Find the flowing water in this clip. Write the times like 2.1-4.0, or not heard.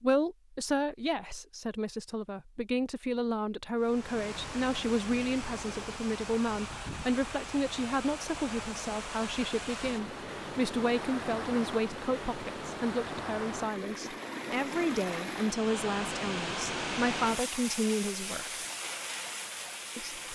3.8-20.2.